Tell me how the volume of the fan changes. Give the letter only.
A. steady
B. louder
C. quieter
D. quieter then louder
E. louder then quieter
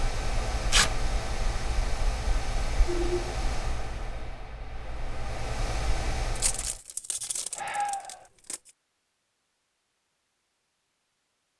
D.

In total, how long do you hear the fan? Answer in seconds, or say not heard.
7 s.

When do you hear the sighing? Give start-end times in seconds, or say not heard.
2.9-3.4, 7.5-8.2.